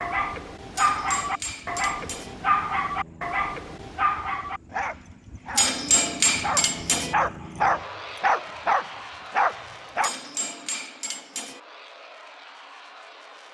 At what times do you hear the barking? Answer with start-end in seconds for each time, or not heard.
0.0-10.2.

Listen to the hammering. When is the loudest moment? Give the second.
6 s.